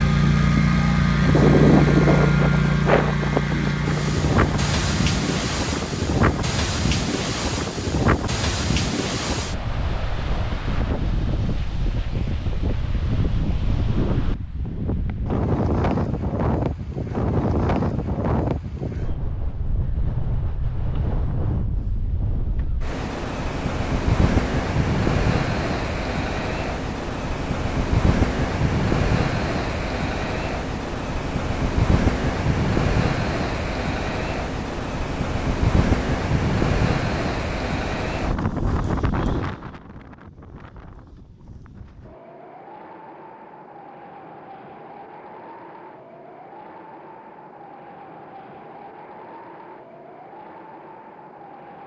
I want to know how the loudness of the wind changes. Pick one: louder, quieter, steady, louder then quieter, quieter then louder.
quieter.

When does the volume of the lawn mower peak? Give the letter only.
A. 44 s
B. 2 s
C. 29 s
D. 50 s
B.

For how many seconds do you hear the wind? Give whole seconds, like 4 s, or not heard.
52 s.